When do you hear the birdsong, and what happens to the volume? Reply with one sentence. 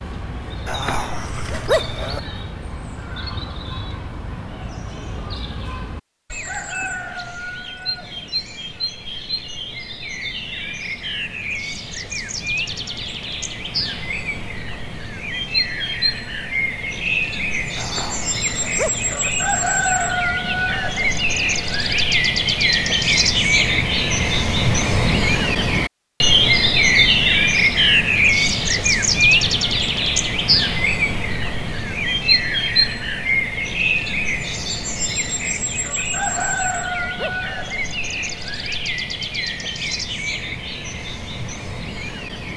You can hear the birdsong from 0.0 to 42.5 s, getting louder then quieter.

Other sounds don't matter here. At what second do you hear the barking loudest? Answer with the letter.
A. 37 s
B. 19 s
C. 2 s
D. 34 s
C.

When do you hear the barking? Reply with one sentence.
You can hear the barking from 0.7 to 2.2 s, from 17.8 to 19.3 s and from 36.2 to 37.7 s.